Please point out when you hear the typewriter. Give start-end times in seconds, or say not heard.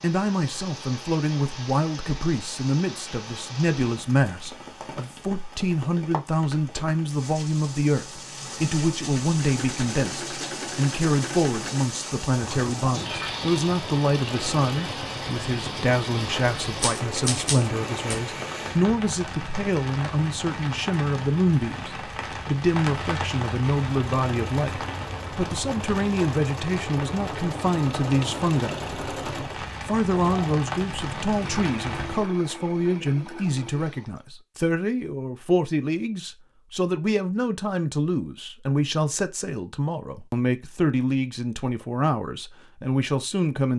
16.6-18.2.